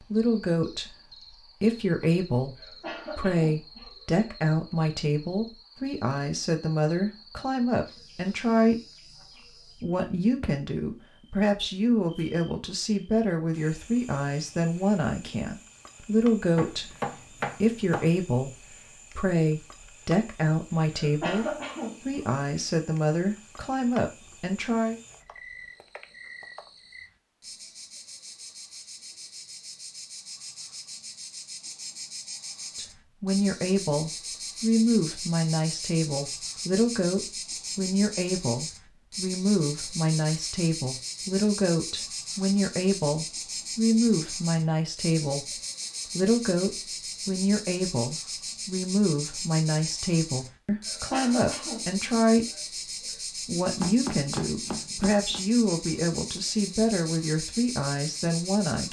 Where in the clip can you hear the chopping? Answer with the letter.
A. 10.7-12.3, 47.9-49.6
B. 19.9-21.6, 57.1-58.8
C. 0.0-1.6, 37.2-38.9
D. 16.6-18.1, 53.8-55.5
D.